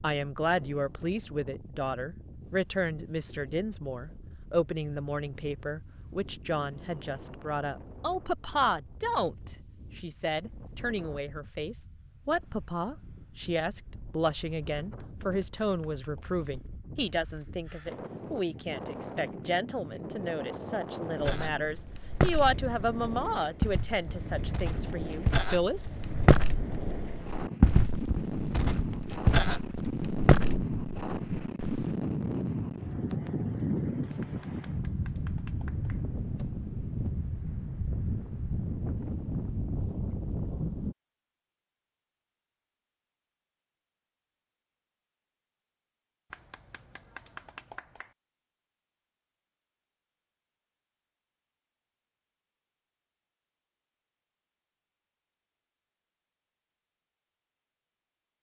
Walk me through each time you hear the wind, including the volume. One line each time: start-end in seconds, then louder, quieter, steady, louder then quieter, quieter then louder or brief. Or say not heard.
0.0-41.0 louder.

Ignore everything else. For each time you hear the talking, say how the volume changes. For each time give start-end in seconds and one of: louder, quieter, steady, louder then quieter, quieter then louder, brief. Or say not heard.
0.0-25.9 steady.